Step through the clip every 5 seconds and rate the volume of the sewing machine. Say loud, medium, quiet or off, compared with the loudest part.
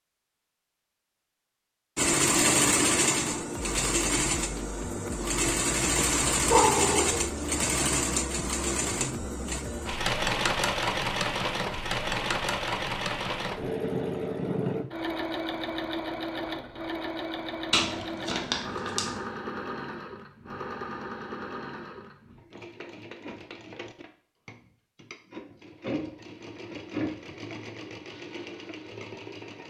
loud, loud, loud, medium, quiet, quiet.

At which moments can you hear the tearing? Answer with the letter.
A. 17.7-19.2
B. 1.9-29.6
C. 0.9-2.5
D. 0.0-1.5
A.